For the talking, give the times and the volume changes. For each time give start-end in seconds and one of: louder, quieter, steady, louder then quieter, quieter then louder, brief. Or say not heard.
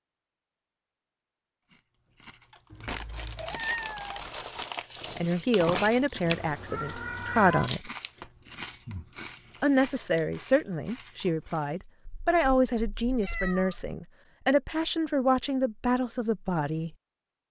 5.2-7.9 brief
9.6-16.9 steady.